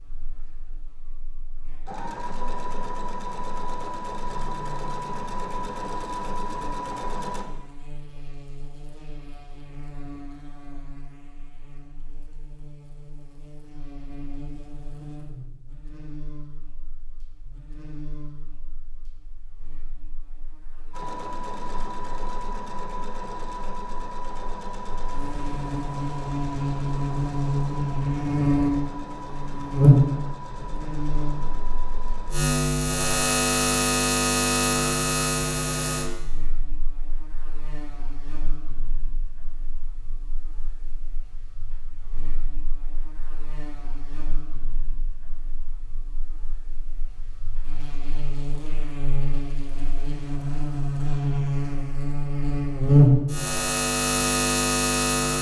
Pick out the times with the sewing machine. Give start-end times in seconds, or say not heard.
1.9-7.5, 20.9-32.5.